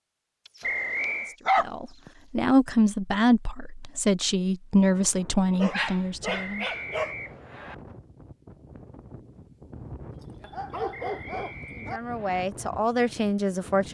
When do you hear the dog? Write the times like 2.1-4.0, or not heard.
0.5-2.1, 5.5-7.2, 10.4-12.0.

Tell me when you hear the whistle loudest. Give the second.
1 s.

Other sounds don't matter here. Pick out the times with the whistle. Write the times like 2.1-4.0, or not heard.
0.6-1.4, 6.2-7.8, 10.9-12.4.